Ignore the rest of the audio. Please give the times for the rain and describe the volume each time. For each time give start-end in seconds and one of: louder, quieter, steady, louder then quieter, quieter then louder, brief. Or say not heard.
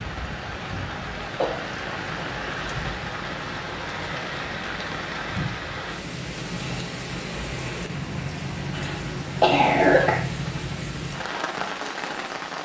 0.0-12.6 steady.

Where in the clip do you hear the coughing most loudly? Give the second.
10 s.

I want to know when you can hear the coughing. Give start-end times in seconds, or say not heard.
1.4-2.3, 8.7-10.2.